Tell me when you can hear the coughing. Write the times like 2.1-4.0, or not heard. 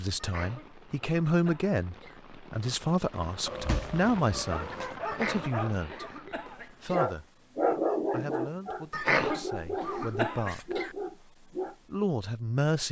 0.1-2.2, 5.0-7.0, 8.9-10.9.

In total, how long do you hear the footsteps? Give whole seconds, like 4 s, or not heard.
not heard.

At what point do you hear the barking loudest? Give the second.
8 s.